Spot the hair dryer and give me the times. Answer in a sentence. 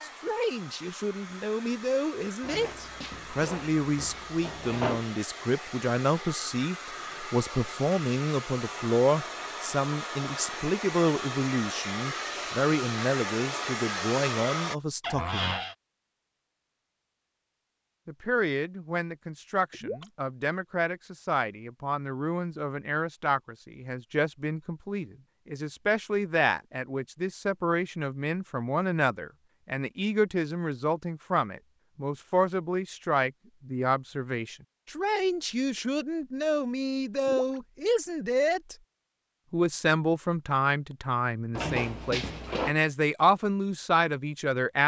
You can hear the hair dryer from 0.0 to 14.8 s.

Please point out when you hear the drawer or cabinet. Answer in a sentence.
The drawer or cabinet can be heard from 2.4 to 5.1 s, from 15.0 to 15.8 s and from 41.5 to 42.8 s.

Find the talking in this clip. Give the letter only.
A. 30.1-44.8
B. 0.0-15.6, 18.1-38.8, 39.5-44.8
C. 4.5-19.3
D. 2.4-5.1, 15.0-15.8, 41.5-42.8
B.